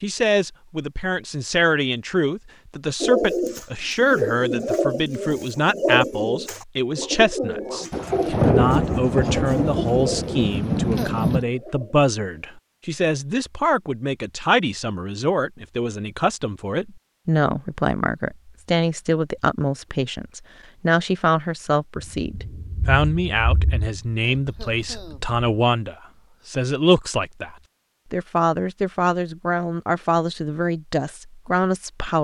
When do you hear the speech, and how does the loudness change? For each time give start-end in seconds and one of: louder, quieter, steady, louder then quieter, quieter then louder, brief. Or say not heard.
0.0-32.1 steady.